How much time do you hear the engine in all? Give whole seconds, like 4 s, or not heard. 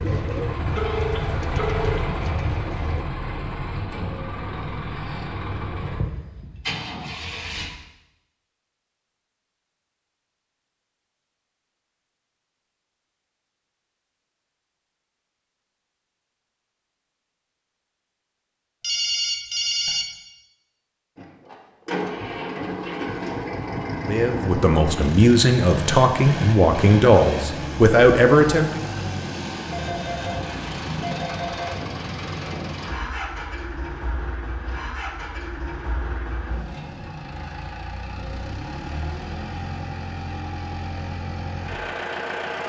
29 s.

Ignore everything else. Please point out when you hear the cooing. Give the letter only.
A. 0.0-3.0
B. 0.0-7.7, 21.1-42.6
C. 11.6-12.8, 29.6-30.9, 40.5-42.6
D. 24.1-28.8
A.